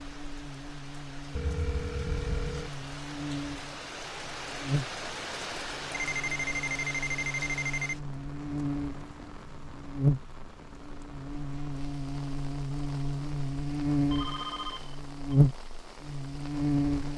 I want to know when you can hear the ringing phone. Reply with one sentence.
You can hear the ringing phone from 1.4 to 2.7 s, from 6.0 to 8.0 s and from 14.1 to 15.3 s.